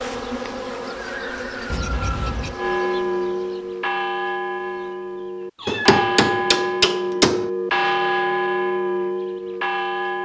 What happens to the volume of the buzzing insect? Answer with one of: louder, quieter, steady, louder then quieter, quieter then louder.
quieter.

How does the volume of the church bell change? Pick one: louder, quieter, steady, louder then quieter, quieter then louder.
louder.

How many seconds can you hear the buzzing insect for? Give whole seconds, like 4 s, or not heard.
5 s.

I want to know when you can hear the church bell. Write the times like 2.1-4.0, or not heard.
0.0-10.1.